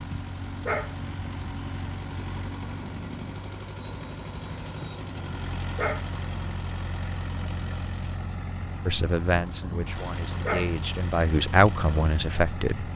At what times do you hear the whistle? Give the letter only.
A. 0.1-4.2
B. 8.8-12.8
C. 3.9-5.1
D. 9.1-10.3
C.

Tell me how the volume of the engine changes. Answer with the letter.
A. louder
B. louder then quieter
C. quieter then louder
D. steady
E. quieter
D.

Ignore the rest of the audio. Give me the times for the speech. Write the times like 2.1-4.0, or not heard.
8.8-12.8.